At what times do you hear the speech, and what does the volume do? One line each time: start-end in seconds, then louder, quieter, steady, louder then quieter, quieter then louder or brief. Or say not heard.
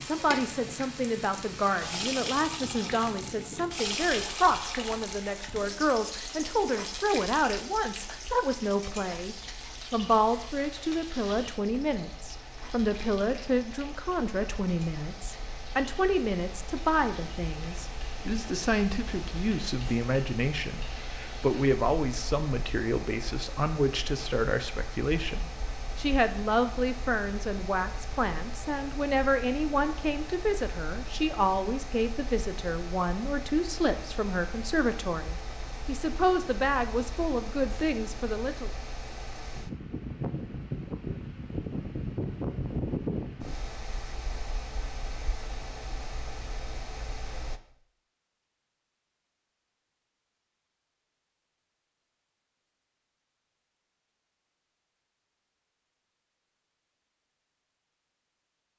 0.0-38.7 steady.